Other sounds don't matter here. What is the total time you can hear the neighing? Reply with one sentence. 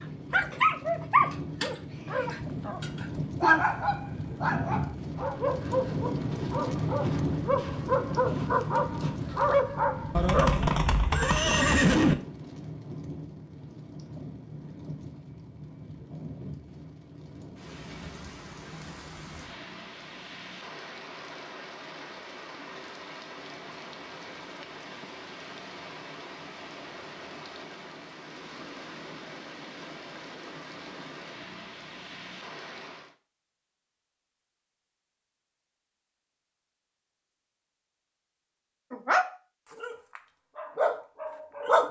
You can hear the neighing for 2 seconds altogether.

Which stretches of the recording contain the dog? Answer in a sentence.
The dog can be heard from 0.3 to 10.5 s and from 38.9 to 41.8 s.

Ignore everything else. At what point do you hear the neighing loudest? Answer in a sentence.
The loudest moment of the neighing is at 12 seconds.